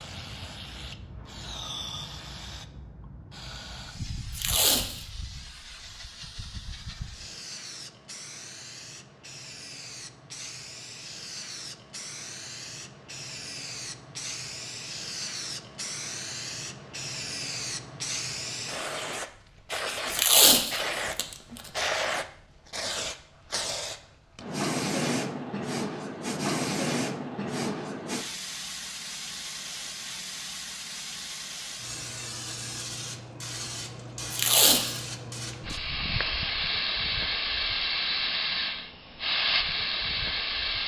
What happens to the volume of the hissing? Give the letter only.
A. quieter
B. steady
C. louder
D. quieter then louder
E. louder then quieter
C.